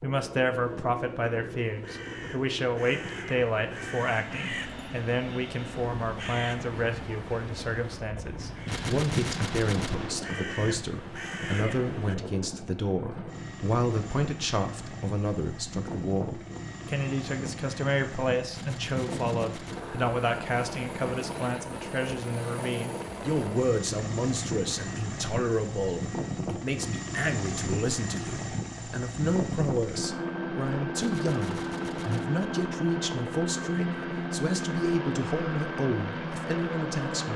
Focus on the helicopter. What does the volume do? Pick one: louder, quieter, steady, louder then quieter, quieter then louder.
louder.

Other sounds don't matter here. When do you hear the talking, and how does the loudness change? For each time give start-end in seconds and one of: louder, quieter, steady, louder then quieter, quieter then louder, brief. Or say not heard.
0.0-37.3 steady.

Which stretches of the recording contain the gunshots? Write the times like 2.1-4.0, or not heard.
8.7-10.2, 18.5-20.0, 30.9-32.4.